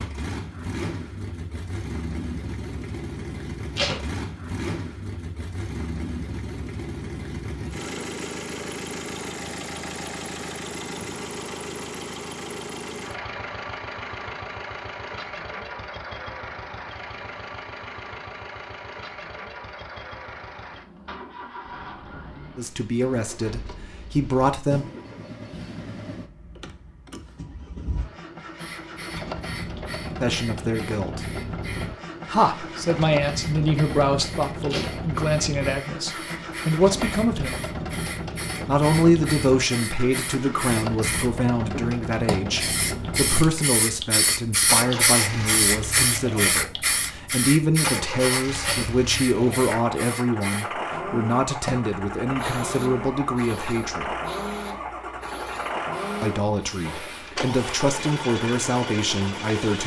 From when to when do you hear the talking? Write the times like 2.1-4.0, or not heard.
22.6-24.9, 30.2-31.2, 32.2-37.6, 38.6-54.1, 56.2-59.8.